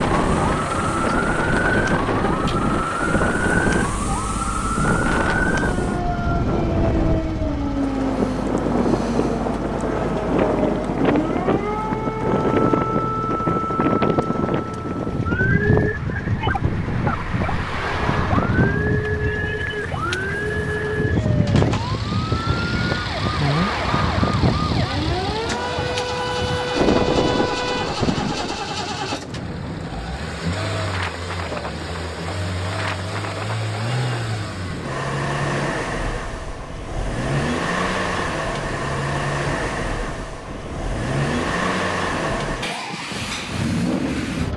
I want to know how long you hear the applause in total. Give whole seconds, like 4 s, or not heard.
not heard.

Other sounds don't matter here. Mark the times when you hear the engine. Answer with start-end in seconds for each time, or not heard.
0.0-44.5.